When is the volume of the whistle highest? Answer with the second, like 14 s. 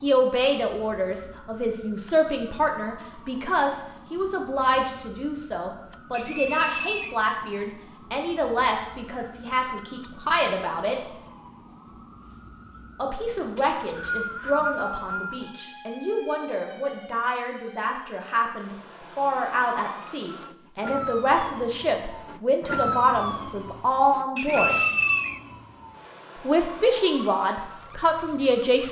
25 s.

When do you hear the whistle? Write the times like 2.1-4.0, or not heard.
6.1-7.2, 13.6-15.4, 24.4-25.4.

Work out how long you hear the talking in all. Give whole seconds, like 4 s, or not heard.
25 s.